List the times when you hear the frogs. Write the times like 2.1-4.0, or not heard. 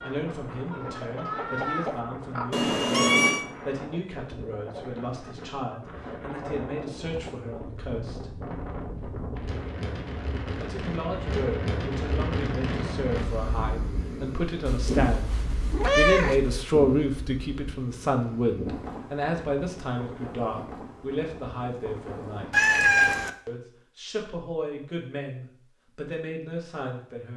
not heard.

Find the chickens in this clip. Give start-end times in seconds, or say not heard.
0.0-2.5.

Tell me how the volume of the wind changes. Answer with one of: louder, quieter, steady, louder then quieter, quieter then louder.
louder then quieter.